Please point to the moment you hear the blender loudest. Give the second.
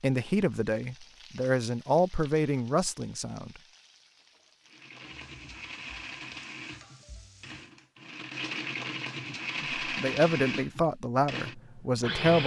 10 s.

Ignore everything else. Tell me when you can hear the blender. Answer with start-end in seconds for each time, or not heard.
4.7-12.4.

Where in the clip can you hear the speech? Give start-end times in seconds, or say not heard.
0.0-3.5, 9.8-12.4.